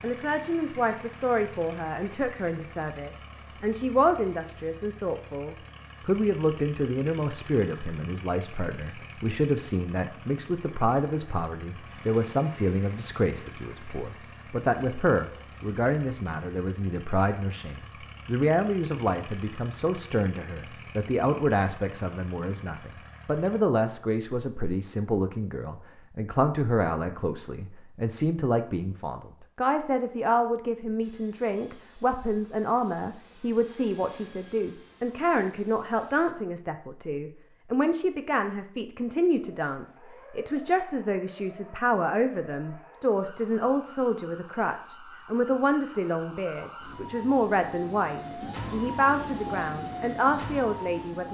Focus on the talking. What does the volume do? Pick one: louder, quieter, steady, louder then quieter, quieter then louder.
steady.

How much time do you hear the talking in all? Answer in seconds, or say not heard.
51 s.